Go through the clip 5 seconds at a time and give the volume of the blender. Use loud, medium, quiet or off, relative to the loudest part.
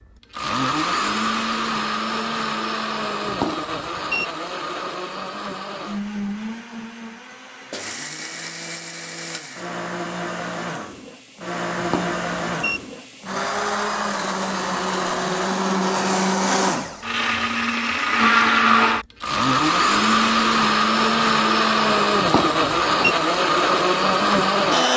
medium, quiet, medium, loud, loud.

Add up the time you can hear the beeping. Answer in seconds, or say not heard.
3 s.